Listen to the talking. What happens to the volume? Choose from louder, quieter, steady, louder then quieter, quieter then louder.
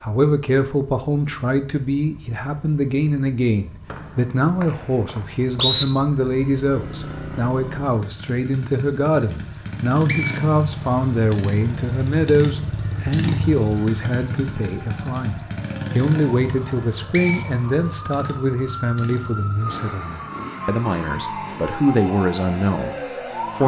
steady.